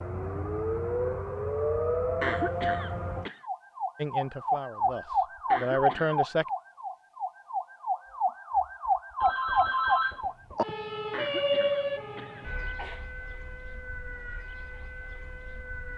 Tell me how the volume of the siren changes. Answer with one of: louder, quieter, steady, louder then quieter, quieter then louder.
quieter.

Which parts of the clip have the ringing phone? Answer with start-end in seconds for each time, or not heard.
9.2-10.7.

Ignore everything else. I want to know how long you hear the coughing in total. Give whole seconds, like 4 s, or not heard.
4 s.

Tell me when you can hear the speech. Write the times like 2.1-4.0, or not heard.
4.0-6.5.